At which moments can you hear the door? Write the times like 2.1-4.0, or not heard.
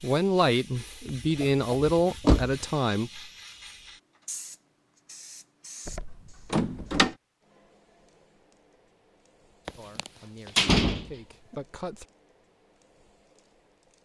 1.1-2.6, 5.8-7.1, 9.7-11.6.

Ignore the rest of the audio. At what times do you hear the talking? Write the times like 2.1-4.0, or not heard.
0.0-3.2, 9.8-12.1.